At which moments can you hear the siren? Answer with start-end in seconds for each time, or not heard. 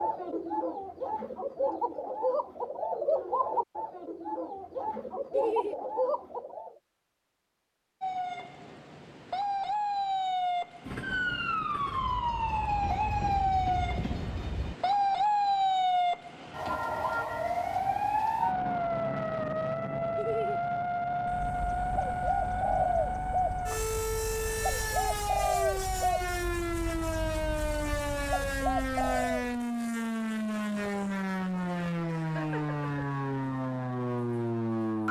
8.0-35.0.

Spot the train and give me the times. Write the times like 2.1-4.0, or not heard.
10.8-14.8.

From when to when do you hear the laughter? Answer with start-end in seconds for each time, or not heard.
5.3-5.8, 20.1-20.6, 32.2-32.8.